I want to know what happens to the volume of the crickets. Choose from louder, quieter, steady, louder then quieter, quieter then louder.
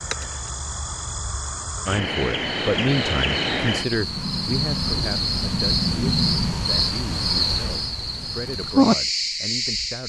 louder.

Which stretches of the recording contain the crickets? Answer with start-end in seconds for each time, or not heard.
0.0-10.0.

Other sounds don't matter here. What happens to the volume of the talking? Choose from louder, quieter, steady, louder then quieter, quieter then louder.
quieter.